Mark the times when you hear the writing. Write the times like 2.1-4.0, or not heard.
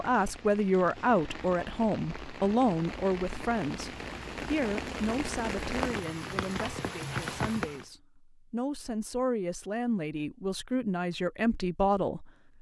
not heard.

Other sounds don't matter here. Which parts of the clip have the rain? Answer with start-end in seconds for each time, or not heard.
0.0-7.8.